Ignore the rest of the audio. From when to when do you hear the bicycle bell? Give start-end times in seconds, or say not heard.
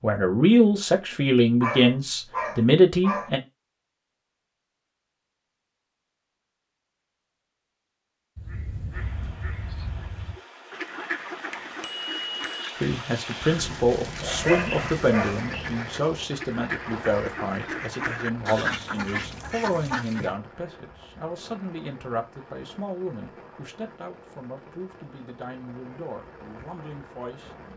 11.5-12.8.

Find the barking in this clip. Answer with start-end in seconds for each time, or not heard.
1.6-3.3, 14.2-15.7.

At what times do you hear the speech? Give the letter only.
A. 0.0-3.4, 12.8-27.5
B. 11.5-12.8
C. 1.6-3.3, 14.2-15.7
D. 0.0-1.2
A.